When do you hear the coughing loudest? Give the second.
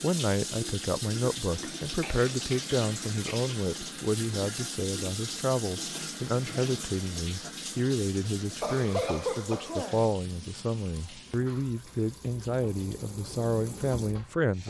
9 s.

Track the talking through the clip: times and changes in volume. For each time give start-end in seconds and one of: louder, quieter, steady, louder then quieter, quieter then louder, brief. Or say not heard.
0.0-14.6 steady.